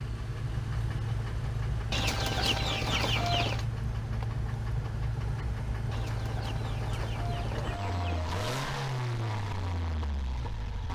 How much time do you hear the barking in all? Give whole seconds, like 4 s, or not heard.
not heard.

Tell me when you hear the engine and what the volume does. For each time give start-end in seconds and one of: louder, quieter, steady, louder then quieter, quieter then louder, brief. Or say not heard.
0.0-10.9 steady.